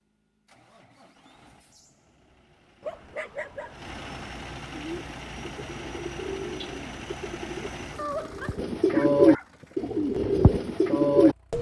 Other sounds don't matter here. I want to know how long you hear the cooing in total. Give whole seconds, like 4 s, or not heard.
7 s.